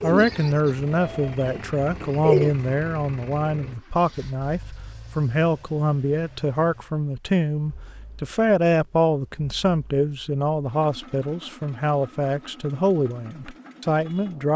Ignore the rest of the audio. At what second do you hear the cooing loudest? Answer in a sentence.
The volume of the cooing peaks at 2 seconds.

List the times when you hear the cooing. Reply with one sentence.
You can hear the cooing from 0.0 to 2.5 s.